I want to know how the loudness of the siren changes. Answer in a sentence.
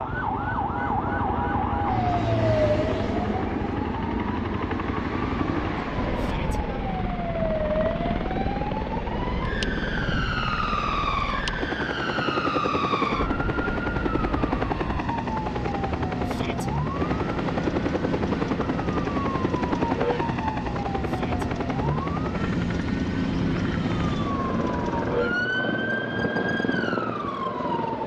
The volume of the siren stays about the same.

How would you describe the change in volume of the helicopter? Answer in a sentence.
The loudness of the helicopter stays about the same.